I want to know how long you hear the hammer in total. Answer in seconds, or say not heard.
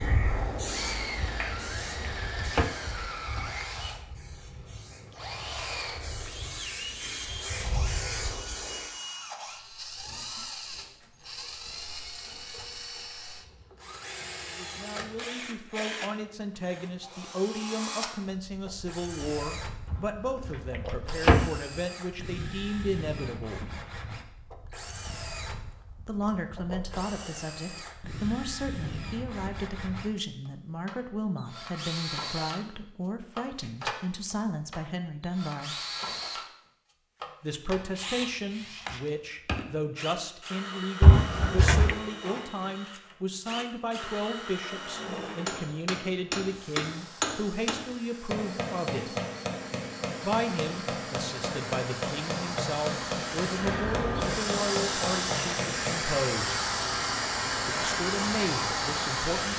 11 s.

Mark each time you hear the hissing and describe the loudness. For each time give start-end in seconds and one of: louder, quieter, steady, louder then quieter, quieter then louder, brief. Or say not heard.
0.0-8.9 quieter then louder
46.4-59.5 louder.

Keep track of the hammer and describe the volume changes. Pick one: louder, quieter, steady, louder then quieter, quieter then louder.
steady.